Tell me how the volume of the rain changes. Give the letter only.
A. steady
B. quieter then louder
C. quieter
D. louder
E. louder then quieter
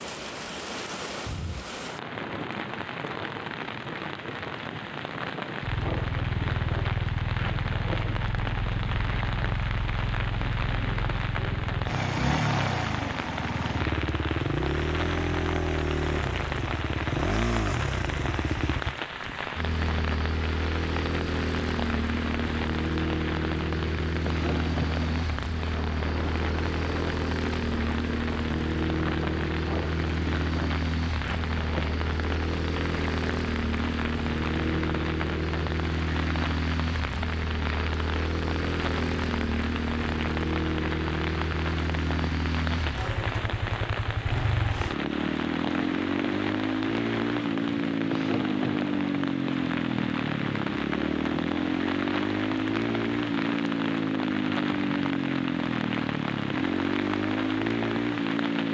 A.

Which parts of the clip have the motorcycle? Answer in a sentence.
The motorcycle can be heard from 5.6 to 58.6 s.